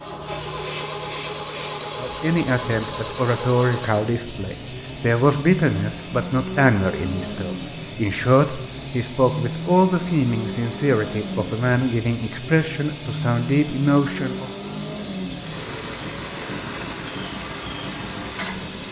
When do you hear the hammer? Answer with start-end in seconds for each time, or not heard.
not heard.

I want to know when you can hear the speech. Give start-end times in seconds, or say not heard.
1.9-14.5.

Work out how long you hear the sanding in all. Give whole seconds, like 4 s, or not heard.
not heard.